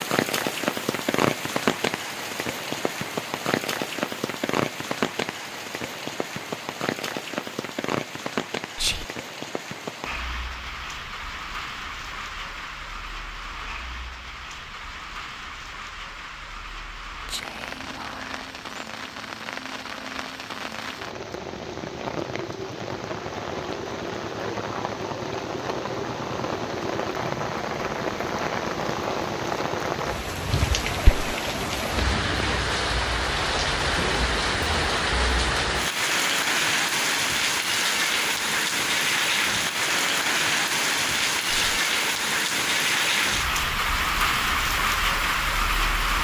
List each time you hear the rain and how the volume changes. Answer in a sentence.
You can hear the rain from 0.0 to 46.1 s, getting quieter then louder.